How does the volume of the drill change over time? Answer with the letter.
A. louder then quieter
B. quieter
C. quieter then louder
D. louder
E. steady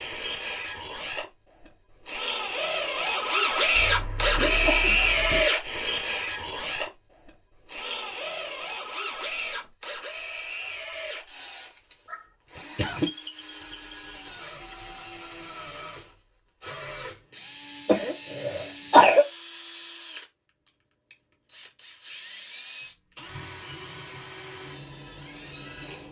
B.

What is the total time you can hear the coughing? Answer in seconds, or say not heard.
4 s.